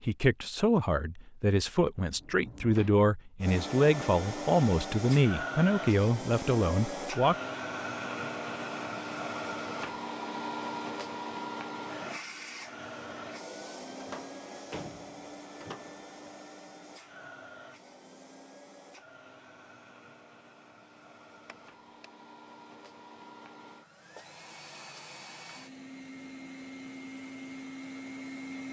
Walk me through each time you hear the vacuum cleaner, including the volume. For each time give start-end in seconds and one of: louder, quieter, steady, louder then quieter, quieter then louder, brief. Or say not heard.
3.4-28.6 quieter then louder.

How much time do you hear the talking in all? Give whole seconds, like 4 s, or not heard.
7 s.